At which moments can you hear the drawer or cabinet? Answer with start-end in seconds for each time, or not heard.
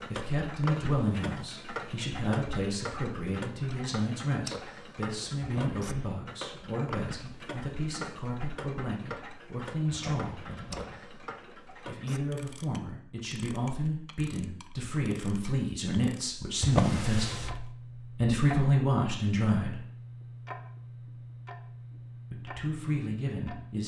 5.4-6.2, 9.9-10.8, 16.6-17.6.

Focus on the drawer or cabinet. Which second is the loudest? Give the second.
17 s.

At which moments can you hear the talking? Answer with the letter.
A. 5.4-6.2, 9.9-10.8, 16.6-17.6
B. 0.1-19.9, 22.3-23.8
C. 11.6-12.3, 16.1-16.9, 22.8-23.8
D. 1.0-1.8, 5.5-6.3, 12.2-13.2
B.